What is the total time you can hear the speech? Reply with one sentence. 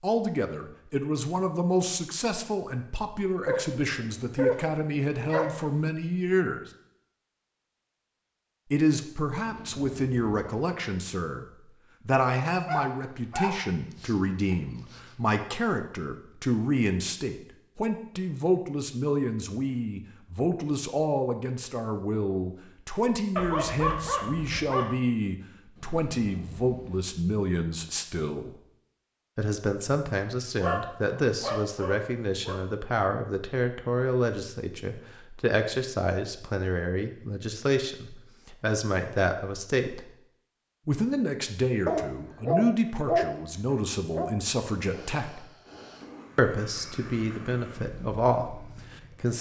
The speech can be heard for 44 seconds in total.